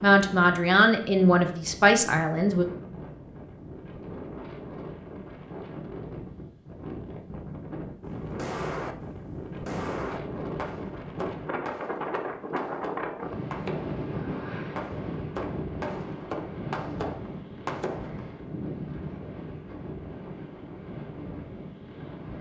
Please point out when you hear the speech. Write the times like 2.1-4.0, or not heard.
0.0-2.6.